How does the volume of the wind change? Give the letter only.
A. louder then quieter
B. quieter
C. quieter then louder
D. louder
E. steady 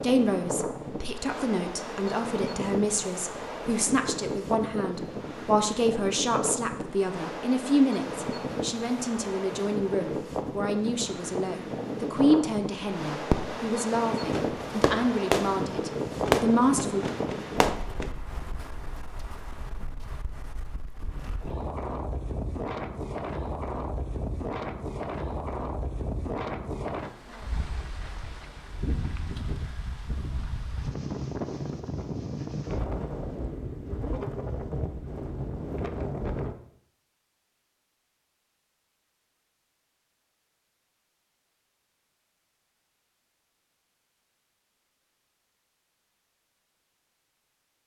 E.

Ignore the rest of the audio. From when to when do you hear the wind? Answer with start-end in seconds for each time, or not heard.
0.0-36.5.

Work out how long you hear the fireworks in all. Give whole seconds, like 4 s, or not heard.
5 s.